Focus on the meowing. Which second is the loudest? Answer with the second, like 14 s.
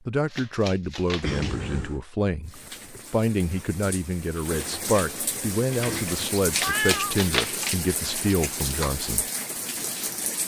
7 s.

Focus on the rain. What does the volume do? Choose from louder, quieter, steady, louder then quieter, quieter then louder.
louder.